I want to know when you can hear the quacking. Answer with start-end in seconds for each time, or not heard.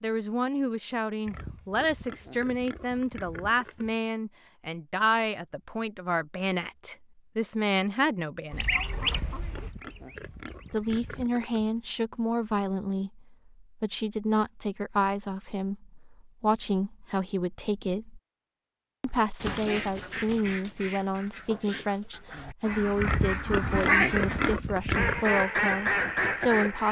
8.5-10.9, 19.4-26.8.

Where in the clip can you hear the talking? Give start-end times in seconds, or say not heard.
0.0-8.8, 10.7-18.2, 19.0-26.8.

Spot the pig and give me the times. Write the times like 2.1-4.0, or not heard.
1.2-4.0, 9.0-11.8, 23.0-25.2.